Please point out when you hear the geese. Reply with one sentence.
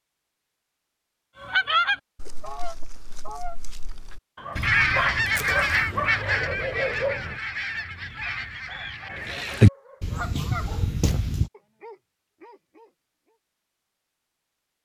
You can hear the geese from 1.4 to 11.5 s.